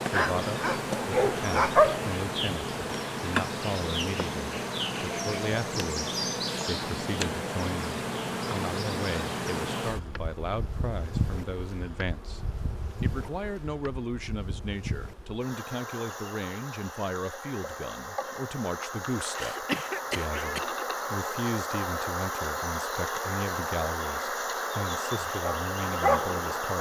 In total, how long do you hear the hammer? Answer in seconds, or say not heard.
not heard.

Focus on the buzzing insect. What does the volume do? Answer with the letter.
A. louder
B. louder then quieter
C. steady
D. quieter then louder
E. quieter
D.